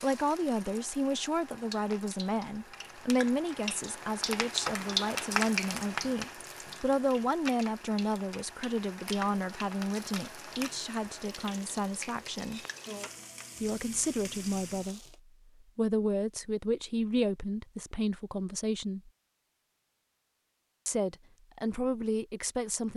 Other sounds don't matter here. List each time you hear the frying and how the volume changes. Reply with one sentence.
You can hear the frying from 0.0 to 15.2 s, getting louder then quieter.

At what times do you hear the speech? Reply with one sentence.
You can hear the speech from 0.0 to 12.6 s, from 13.6 to 15.2 s, from 15.8 to 19.1 s and from 20.9 to 22.9 s.